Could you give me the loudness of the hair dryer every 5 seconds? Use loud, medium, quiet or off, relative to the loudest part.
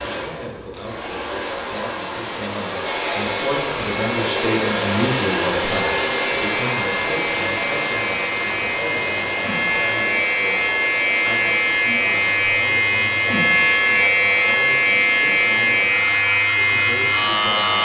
loud, loud, medium, medium.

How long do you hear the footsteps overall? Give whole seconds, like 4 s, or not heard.
not heard.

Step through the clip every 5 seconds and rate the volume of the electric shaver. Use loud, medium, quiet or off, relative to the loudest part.
medium, medium, loud, loud.